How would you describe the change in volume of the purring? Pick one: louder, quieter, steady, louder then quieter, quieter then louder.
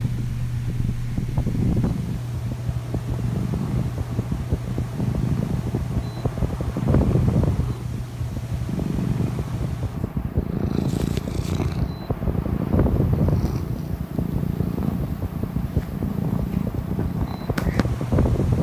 steady.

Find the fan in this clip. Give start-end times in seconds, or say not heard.
0.0-18.5.